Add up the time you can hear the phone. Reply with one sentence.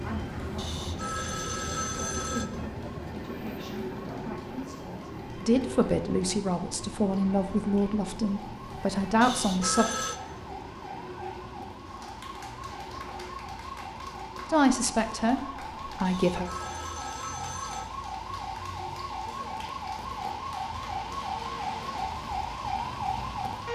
The phone can be heard for 5 seconds in total.